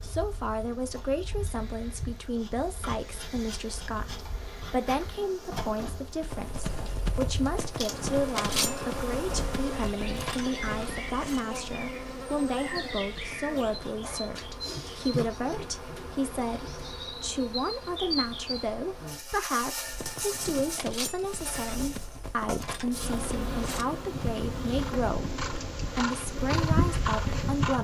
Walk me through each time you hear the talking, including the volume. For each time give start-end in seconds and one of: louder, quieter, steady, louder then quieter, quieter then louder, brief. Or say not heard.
0.0-27.7 steady.